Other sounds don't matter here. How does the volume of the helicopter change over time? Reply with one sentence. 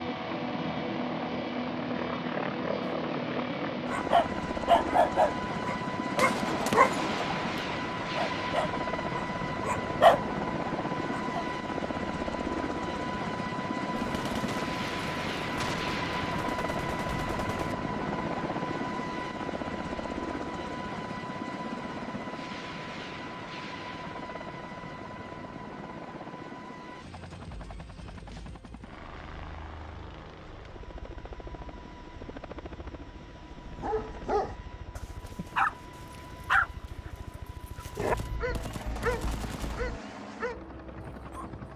The loudness of the helicopter goes down.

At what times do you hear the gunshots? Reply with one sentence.
You can hear the gunshots from 6.2 to 7.7 s, from 13.9 to 17.8 s and from 38.0 to 40.0 s.